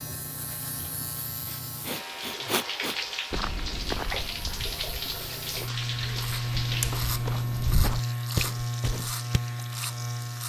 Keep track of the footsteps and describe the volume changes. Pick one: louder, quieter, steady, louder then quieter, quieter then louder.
quieter then louder.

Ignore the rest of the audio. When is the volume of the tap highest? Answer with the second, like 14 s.
5 s.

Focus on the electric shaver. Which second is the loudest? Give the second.
7 s.